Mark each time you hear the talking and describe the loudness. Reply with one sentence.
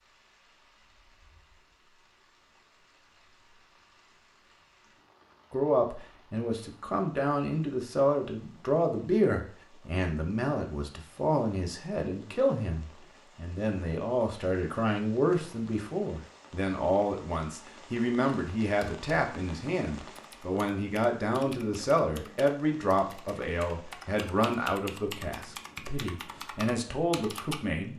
You can hear the talking from 5.5 to 27.9 s, at a steady volume.